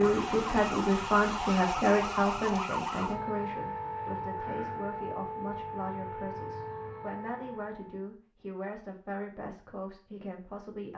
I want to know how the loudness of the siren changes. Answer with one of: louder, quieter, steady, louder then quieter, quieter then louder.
quieter.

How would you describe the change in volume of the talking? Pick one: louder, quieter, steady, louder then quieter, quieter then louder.
quieter.